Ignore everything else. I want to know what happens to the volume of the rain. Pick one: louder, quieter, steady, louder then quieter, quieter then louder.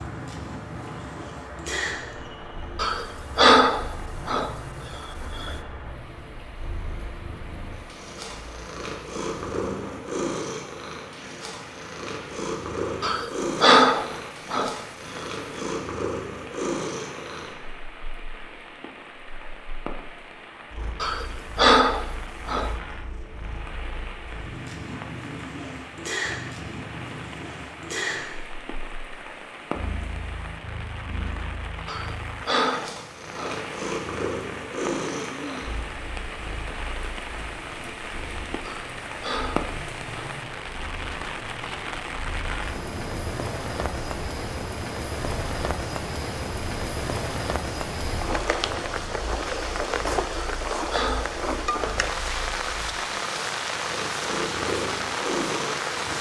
louder.